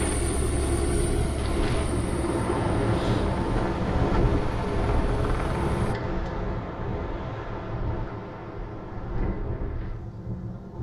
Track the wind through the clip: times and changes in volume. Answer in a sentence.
The wind can be heard from 0.0 to 10.7 s, getting louder then quieter.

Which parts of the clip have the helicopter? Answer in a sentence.
You can hear the helicopter from 0.0 to 6.0 s.